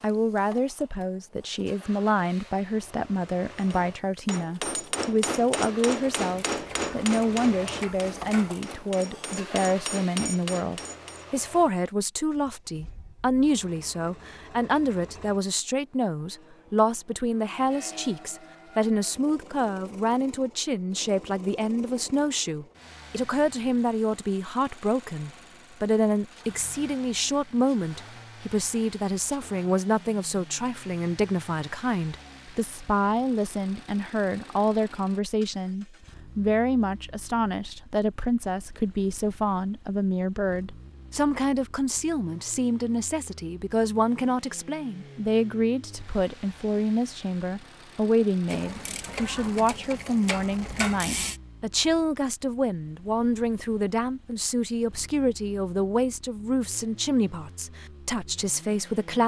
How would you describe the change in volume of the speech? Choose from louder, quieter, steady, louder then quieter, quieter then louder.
steady.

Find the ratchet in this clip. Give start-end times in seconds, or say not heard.
6.2-8.7, 48.5-51.4.